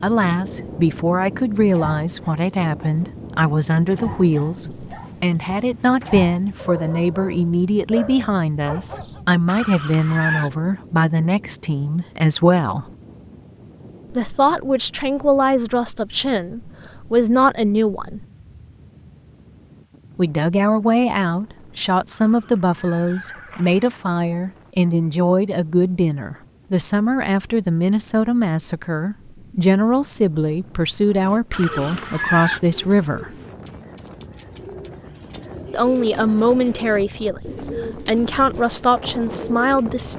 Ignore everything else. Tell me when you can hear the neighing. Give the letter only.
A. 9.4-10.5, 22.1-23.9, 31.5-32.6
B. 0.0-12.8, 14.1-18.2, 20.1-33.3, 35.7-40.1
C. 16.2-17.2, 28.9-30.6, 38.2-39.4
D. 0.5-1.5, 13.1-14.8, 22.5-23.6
A.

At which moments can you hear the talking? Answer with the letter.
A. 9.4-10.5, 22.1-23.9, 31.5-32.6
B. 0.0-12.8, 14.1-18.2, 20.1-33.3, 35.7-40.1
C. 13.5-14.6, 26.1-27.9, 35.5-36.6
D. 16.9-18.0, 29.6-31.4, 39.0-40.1
B.